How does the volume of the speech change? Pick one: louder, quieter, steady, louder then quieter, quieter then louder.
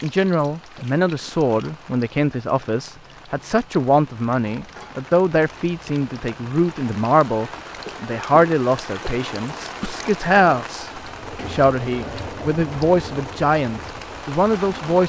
steady.